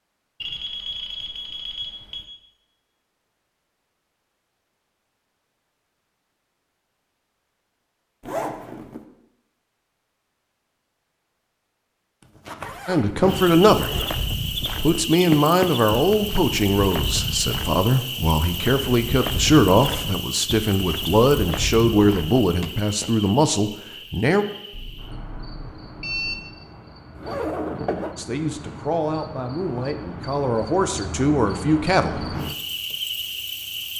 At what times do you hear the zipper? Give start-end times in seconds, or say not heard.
8.2-9.1, 12.2-14.1, 27.1-28.1.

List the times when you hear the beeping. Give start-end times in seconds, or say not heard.
0.4-2.3, 24.7-26.4.